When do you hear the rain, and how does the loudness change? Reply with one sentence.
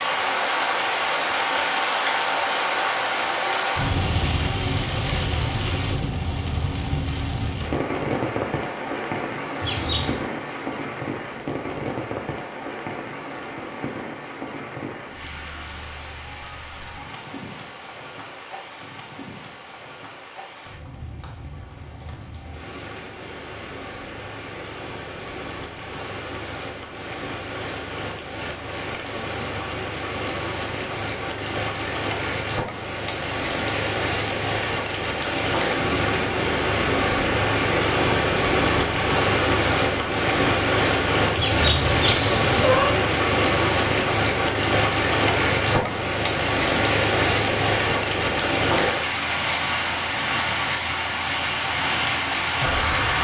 The rain can be heard from 0.0 to 53.2 s, getting quieter then louder.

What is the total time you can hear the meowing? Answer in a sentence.
The meowing can be heard for 2 seconds in total.